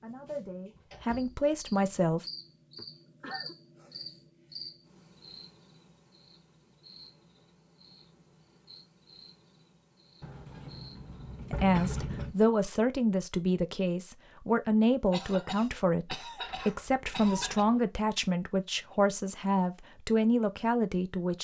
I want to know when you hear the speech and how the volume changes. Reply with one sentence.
You can hear the speech briefly from 0.0 to 2.2 s; and from 11.5 to 21.3 s, at a steady volume.